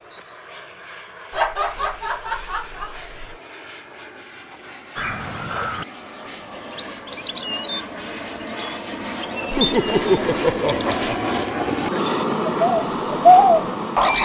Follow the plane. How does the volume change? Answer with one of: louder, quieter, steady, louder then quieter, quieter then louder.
louder.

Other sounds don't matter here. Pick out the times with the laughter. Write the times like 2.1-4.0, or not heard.
1.3-3.4, 9.5-11.2.